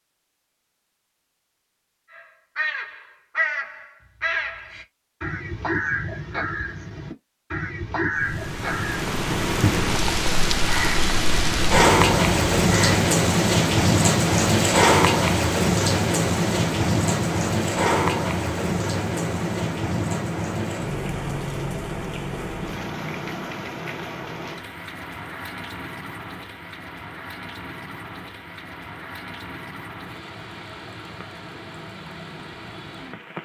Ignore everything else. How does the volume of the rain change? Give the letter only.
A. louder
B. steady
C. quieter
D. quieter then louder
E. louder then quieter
C.